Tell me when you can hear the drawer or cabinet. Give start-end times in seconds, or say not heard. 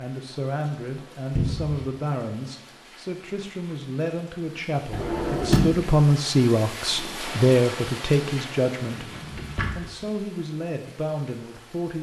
1.4-1.9, 4.9-5.8, 8.8-9.9.